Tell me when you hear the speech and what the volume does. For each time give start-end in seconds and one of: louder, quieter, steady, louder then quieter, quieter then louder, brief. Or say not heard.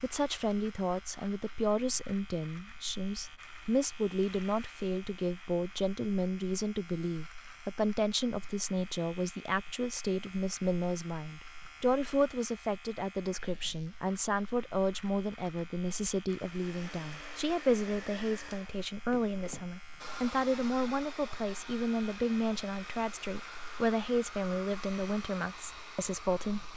0.0-26.7 steady.